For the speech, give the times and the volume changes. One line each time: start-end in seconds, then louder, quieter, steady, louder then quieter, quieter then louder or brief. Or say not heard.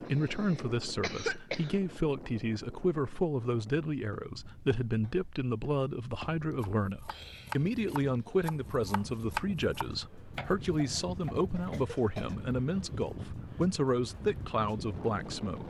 0.0-15.6 steady.